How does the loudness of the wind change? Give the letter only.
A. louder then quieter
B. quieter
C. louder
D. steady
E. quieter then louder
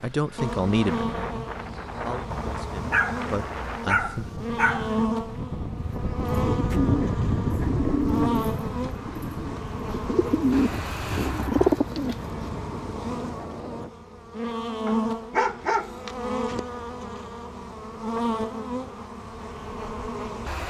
A.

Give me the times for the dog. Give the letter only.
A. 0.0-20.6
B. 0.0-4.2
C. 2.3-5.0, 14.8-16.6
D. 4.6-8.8
C.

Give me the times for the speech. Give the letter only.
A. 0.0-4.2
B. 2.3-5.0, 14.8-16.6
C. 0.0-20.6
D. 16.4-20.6
A.